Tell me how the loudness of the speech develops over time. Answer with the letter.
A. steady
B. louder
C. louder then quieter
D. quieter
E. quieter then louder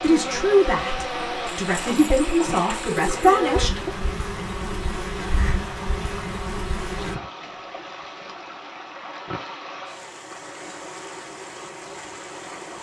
E.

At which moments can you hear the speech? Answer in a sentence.
You can hear the speech from 0.0 to 4.0 s.